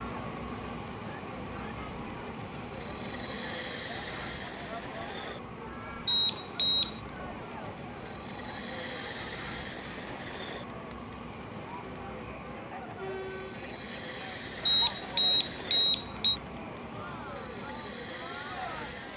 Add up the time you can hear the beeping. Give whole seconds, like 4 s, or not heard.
3 s.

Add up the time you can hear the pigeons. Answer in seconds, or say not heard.
not heard.